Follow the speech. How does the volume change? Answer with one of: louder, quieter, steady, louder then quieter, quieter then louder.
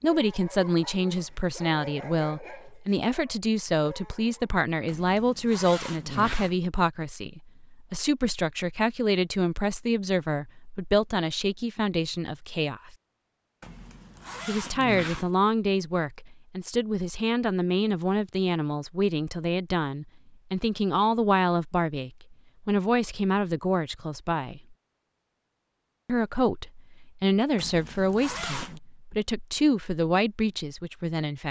steady.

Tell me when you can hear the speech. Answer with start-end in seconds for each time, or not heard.
0.0-12.9, 14.4-24.8, 26.1-31.4.